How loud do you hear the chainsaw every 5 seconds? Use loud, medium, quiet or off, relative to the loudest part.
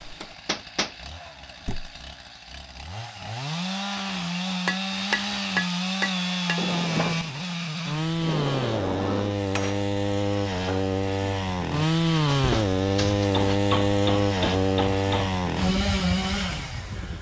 medium, loud, loud, loud.